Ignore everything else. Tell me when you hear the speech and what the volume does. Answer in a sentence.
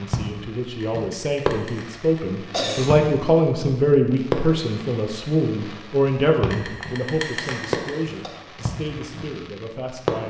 You can hear the speech from 0.0 to 10.2 s, getting louder then quieter.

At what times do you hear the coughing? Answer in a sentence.
You can hear the coughing from 0.8 to 3.0 s and from 6.5 to 8.3 s.